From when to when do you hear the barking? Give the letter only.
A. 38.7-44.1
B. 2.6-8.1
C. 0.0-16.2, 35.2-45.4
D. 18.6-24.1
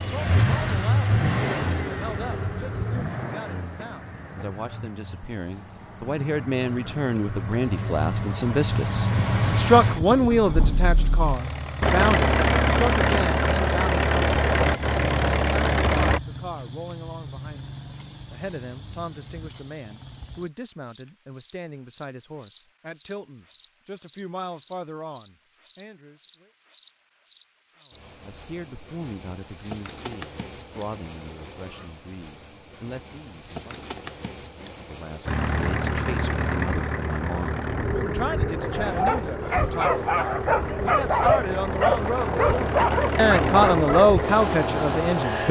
A.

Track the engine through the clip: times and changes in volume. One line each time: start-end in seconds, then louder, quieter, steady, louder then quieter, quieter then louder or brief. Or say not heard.
0.0-16.2 quieter then louder
35.2-45.4 quieter then louder.